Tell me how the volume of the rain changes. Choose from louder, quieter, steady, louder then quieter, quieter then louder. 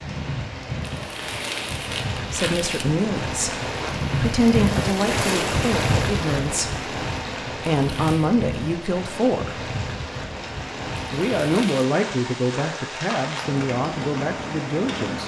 louder then quieter.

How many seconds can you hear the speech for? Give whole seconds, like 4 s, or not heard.
11 s.